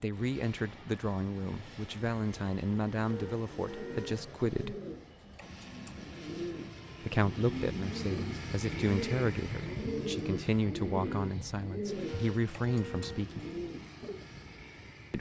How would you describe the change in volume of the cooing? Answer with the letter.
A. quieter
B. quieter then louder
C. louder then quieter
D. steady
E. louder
C.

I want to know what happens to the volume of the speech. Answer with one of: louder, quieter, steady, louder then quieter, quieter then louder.
steady.